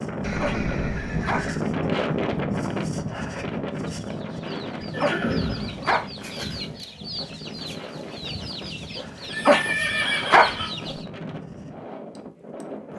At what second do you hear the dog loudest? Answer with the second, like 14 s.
10 s.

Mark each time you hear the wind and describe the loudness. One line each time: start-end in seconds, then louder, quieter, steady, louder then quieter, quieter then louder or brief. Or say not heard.
0.0-12.9 quieter.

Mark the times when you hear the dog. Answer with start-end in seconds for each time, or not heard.
0.4-1.4, 5.0-6.0, 9.4-10.5.